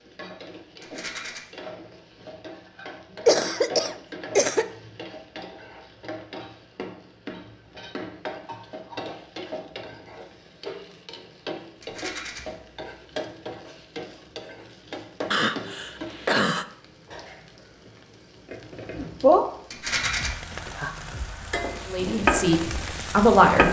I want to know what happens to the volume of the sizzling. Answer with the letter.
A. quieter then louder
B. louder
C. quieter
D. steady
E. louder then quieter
B.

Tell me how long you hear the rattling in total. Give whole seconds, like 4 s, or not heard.
2 s.